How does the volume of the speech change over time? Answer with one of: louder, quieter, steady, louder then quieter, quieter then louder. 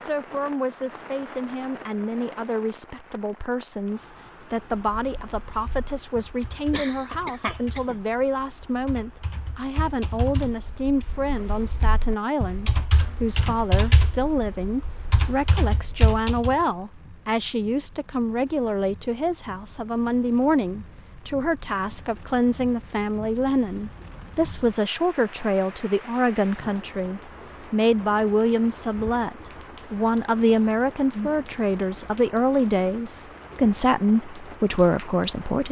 louder.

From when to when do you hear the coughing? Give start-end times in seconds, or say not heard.
6.7-8.0.